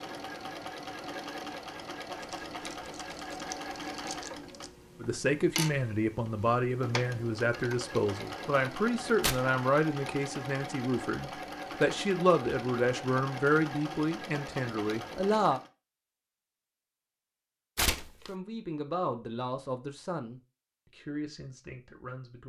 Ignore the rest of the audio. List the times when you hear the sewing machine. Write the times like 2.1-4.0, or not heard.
0.0-15.7.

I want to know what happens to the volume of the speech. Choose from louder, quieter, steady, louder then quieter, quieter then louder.
quieter.